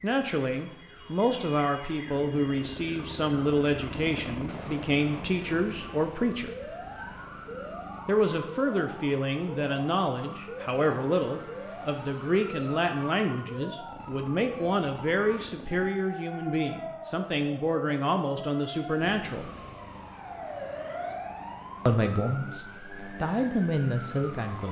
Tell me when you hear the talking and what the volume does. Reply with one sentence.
The talking can be heard from 0.0 to 6.5 s, at a steady volume; from 8.1 to 19.5 s, at a steady volume; and briefly from 21.9 to 24.6 s.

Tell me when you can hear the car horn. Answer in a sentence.
The car horn can't be heard in this clip.